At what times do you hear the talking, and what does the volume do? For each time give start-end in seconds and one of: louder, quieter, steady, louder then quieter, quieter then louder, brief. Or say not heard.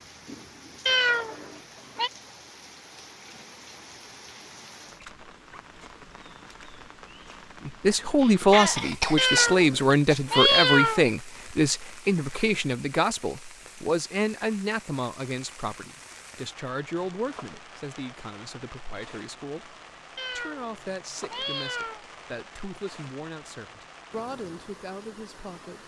7.7-25.8 quieter.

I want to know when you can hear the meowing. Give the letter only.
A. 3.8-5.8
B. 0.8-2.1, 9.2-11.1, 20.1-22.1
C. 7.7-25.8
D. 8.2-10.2
B.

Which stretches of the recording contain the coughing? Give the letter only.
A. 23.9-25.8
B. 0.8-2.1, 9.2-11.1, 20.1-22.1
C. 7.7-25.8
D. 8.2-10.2
D.